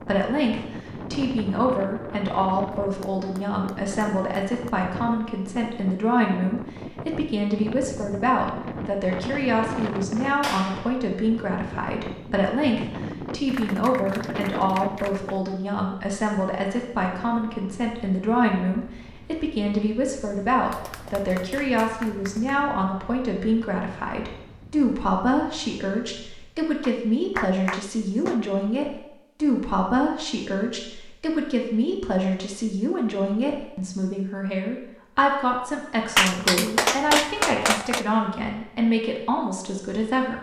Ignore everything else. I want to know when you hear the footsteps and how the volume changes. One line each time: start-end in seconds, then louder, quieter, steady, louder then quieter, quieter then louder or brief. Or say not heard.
not heard.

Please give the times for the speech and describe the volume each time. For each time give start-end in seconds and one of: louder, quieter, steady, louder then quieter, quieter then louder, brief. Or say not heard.
0.0-40.3 steady.